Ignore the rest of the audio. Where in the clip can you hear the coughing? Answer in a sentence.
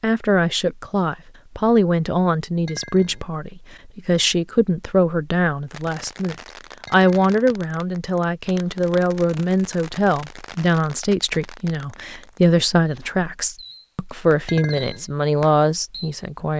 You can't hear the coughing here.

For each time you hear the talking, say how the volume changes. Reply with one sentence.
The talking can be heard from 0.0 to 16.5 s, at a steady volume.